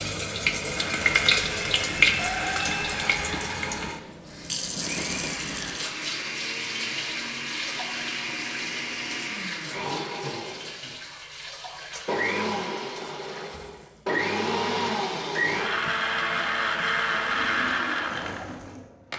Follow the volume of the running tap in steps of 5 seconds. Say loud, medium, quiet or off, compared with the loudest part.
loud, medium, quiet, quiet.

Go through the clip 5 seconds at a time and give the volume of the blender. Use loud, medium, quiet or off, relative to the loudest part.
medium, medium, loud, loud.